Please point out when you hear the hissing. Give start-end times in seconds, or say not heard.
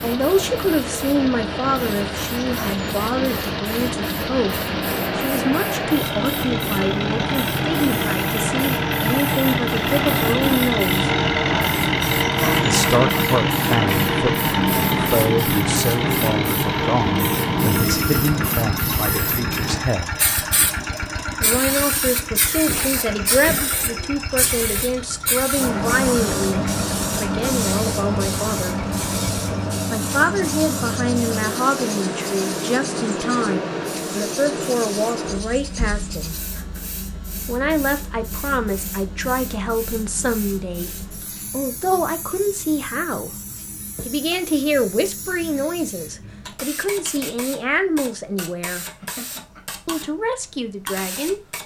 0.0-51.6.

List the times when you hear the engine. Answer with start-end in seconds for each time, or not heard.
0.0-36.5.